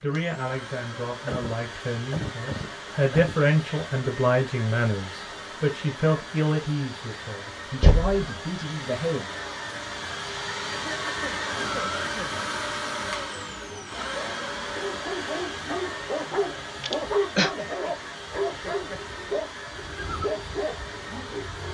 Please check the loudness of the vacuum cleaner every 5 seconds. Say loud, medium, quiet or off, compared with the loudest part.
medium, medium, loud, medium, medium.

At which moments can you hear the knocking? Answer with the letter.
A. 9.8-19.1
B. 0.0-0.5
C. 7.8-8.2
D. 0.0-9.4
C.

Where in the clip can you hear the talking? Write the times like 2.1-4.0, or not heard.
0.0-9.4.